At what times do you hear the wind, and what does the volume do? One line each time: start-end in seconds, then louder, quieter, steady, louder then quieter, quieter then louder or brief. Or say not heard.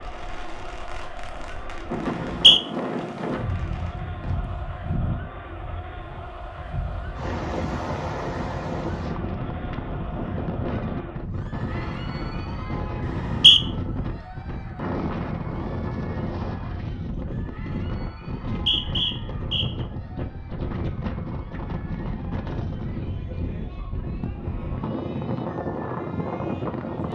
0.0-27.1 steady.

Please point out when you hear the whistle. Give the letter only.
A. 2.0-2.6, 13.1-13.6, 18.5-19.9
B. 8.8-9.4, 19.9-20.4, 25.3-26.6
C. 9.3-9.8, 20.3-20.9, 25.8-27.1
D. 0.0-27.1
A.